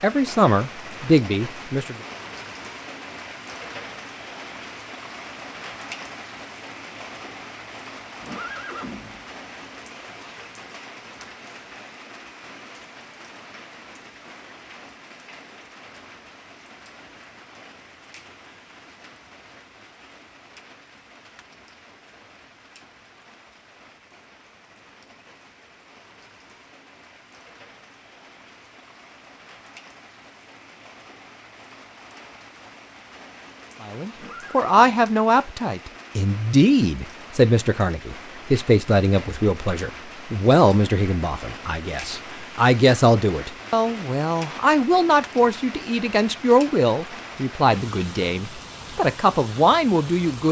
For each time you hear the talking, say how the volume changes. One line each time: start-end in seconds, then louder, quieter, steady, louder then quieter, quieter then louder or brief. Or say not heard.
0.0-1.9 brief
33.8-50.4 steady.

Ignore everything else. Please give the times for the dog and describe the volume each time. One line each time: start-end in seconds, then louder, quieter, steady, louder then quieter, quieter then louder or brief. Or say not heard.
not heard.